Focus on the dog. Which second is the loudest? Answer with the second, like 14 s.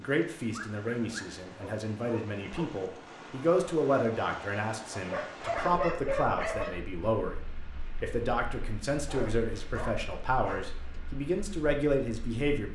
6 s.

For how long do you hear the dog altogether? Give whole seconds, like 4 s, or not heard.
6 s.